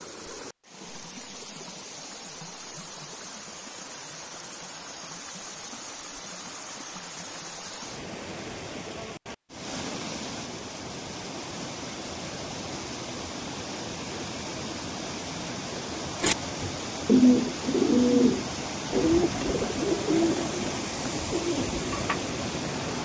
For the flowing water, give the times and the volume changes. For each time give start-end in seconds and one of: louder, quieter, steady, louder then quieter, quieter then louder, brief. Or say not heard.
0.0-22.9 louder.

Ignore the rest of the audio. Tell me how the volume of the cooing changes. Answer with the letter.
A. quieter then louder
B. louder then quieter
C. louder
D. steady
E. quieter
E.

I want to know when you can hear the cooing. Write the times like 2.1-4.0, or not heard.
16.2-22.2.